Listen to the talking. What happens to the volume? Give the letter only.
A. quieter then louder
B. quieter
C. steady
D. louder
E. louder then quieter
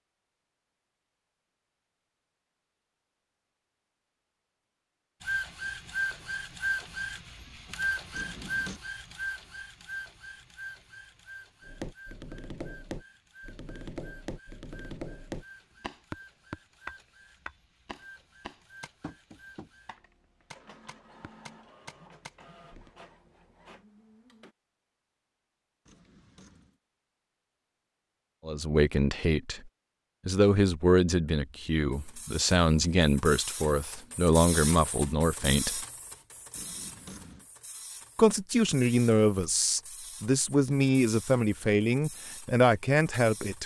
C.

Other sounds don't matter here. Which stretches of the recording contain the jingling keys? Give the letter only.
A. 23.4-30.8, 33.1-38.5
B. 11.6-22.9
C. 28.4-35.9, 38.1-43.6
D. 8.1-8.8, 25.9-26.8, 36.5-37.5
D.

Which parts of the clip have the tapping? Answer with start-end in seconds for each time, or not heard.
11.6-22.9.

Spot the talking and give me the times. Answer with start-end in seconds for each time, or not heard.
28.4-35.9, 38.1-43.6.